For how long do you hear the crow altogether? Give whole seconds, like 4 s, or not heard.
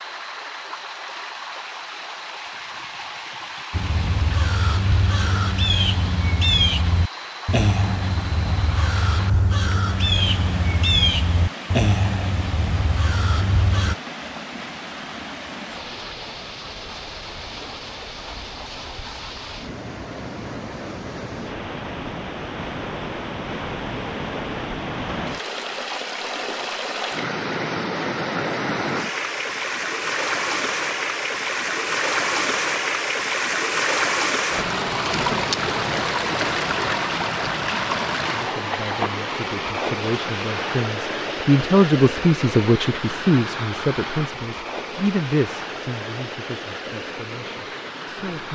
10 s.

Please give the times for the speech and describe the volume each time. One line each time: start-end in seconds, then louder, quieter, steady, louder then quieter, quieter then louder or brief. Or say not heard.
38.4-48.5 louder then quieter.